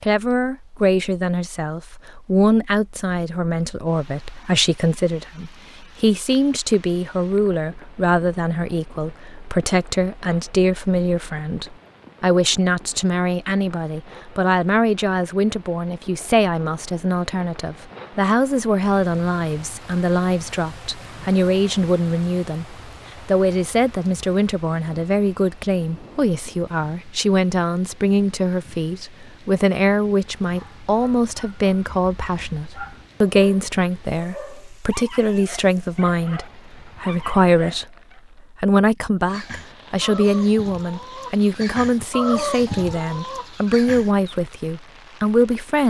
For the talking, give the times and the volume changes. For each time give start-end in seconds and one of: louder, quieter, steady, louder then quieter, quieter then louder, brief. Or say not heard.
0.0-37.9 steady
38.6-45.8 steady.